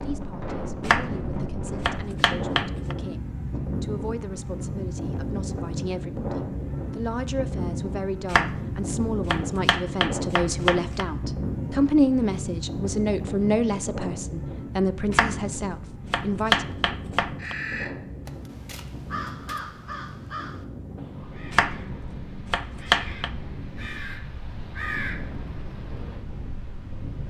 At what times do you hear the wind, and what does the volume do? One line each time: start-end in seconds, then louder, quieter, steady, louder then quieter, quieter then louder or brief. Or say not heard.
0.0-27.2 quieter.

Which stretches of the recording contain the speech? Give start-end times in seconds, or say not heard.
0.0-16.7.